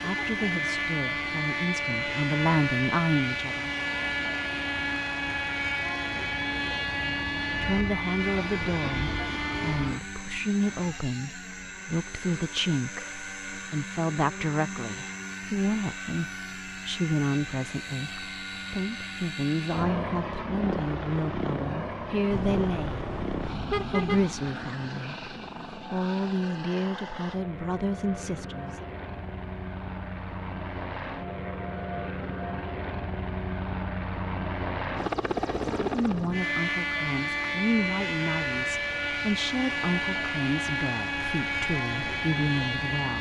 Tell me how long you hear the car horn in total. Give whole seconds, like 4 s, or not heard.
2 s.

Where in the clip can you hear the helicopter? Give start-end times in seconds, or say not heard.
0.0-43.1.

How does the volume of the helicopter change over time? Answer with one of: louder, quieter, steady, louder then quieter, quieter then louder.
quieter then louder.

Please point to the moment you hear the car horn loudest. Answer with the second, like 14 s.
24 s.